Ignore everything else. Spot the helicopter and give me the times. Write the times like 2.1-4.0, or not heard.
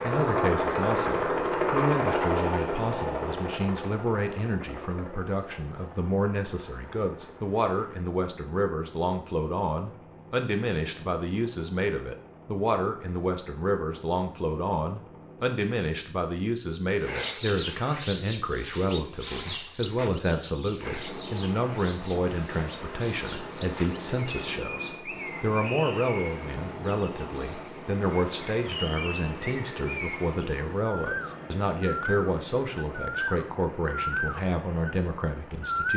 0.0-15.6, 20.8-35.9.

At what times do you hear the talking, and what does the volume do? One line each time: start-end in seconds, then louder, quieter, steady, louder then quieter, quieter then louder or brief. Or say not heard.
0.0-35.9 steady.